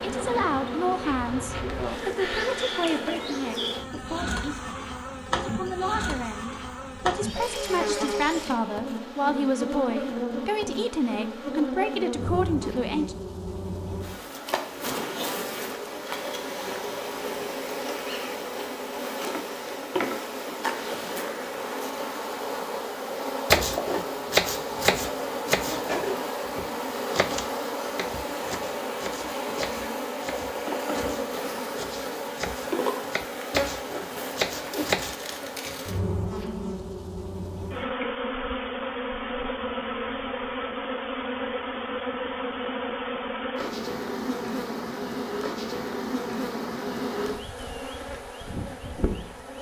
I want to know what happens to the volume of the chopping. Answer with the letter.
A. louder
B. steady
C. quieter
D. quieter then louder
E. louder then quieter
D.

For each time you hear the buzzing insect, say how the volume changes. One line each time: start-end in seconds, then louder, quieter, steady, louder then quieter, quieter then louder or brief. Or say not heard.
0.0-49.5 steady.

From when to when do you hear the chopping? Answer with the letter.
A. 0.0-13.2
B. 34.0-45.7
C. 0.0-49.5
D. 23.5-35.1
D.